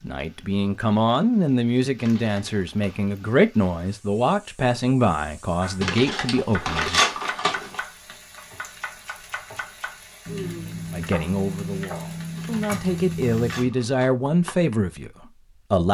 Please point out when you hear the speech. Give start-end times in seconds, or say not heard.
0.0-7.0, 10.9-15.8.